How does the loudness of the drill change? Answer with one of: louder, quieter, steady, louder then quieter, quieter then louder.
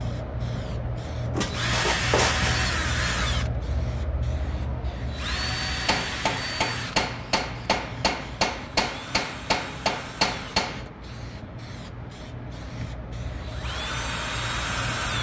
quieter then louder.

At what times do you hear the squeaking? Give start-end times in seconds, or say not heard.
1.4-2.6.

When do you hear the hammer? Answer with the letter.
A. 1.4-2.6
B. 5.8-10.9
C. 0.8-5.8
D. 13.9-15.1
B.